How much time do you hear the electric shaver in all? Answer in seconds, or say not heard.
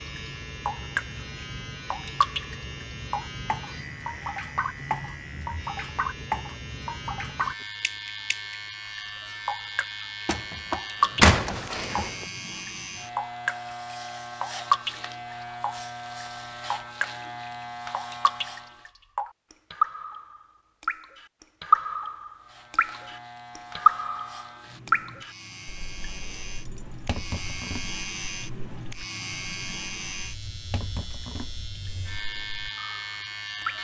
30 s.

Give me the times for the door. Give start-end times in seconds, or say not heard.
10.2-12.2.